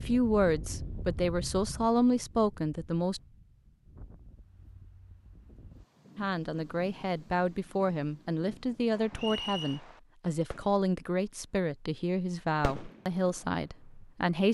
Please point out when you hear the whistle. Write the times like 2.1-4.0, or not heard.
9.2-9.8.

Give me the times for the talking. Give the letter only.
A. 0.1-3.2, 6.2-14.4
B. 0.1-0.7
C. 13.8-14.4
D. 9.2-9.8
A.